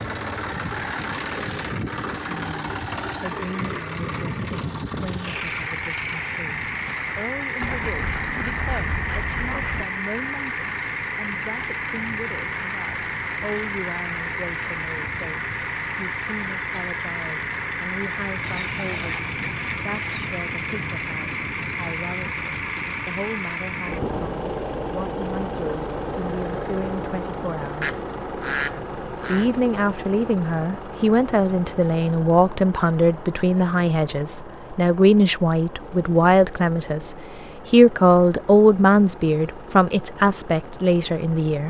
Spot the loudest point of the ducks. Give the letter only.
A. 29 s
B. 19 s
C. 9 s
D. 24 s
A.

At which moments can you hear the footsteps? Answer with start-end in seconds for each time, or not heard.
not heard.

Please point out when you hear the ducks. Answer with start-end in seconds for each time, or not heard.
7.6-9.8, 18.4-20.3, 27.8-29.4.